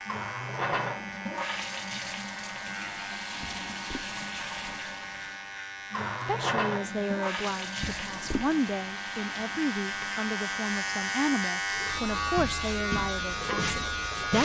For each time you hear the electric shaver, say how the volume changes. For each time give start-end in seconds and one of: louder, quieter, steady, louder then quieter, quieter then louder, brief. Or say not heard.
0.0-14.4 louder.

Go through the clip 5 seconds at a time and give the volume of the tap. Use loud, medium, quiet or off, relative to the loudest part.
loud, loud, medium.